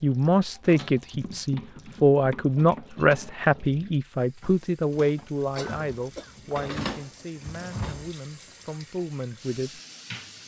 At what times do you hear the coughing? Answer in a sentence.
The coughing can be heard from 5.5 to 6.3 s.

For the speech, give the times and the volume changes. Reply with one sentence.
The speech can be heard from 0.0 to 9.8 s, getting quieter.